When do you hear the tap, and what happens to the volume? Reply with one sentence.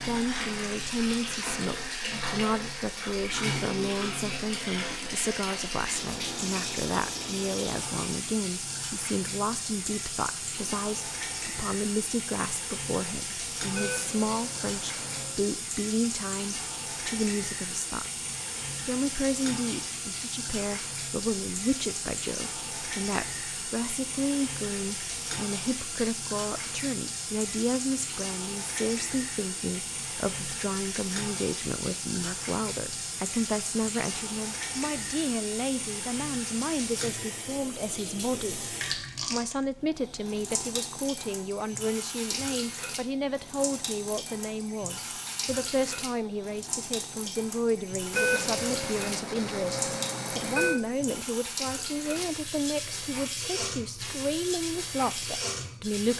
The tap can be heard from 0.0 to 56.1 s, at a steady volume.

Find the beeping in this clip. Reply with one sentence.
The beeping can be heard from 13.7 to 15.4 s and from 48.1 to 50.8 s.